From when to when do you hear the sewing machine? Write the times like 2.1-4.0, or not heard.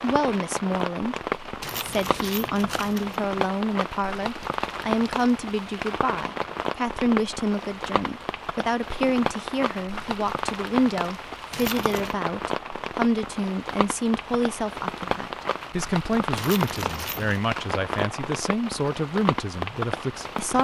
not heard.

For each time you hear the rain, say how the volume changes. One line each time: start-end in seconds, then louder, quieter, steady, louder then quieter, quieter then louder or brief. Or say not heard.
0.0-20.5 steady.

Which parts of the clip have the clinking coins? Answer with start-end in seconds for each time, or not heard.
1.6-3.2, 11.5-12.2, 16.4-17.4.